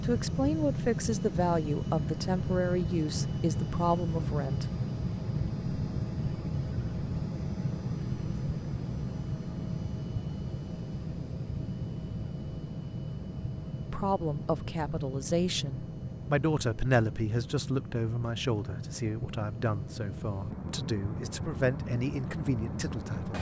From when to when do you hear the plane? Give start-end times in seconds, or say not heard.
0.0-23.3.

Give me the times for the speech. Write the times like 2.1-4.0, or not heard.
0.0-4.7, 13.9-23.3.